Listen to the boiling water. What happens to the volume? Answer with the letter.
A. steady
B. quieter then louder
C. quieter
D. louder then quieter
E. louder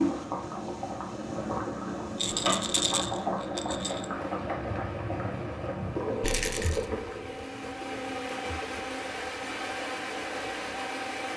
C.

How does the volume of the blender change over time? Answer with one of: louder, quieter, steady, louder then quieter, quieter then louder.
louder.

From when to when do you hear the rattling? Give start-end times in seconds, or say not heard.
2.1-4.0, 6.2-6.9.